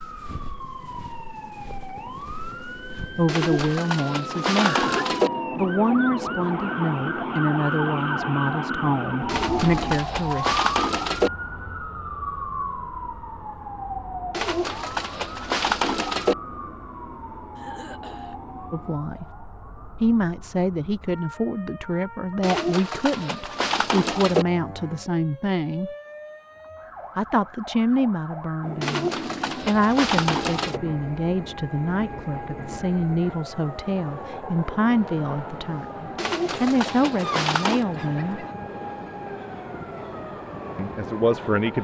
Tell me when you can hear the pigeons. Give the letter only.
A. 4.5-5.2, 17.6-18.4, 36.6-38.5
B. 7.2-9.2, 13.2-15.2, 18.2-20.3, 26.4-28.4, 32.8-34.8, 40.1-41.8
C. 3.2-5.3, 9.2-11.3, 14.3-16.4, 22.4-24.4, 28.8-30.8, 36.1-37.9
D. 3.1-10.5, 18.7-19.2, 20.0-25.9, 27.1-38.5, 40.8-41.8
C.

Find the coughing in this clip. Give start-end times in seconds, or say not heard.
4.5-5.2, 17.6-18.4, 36.6-38.5.